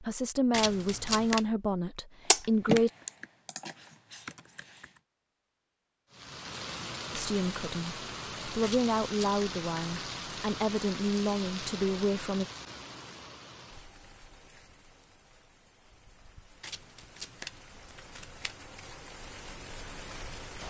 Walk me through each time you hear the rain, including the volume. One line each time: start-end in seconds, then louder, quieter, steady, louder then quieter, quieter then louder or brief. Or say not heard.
6.1-20.6 quieter then louder.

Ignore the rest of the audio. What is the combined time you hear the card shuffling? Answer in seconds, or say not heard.
4 s.